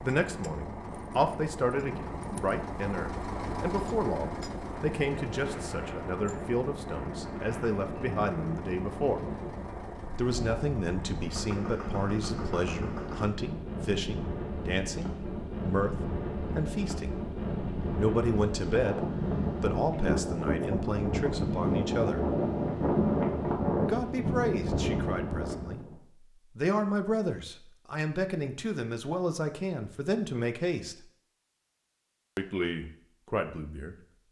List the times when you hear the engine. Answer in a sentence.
The engine can be heard from 0.0 to 13.3 s.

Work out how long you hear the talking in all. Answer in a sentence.
You can hear the talking for 29 seconds altogether.